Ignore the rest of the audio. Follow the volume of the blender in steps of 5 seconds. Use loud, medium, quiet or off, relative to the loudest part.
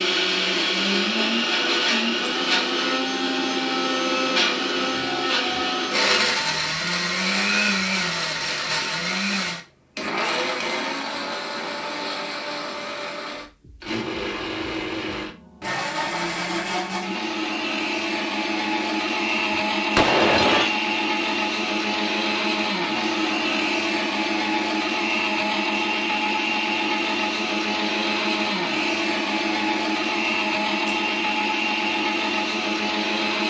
loud, loud, medium, loud, loud, loud, loud.